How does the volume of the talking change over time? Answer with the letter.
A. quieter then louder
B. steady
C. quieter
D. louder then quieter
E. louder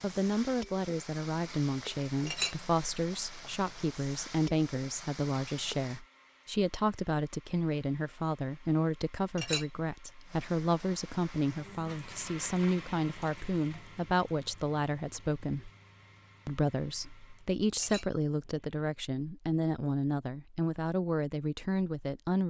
B.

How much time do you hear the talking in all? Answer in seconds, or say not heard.
22 s.